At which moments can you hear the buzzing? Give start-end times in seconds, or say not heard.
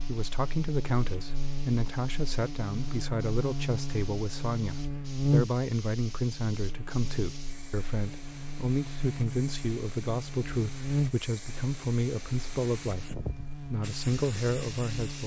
0.0-15.2.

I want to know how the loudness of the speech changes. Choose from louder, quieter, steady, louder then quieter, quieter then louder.
steady.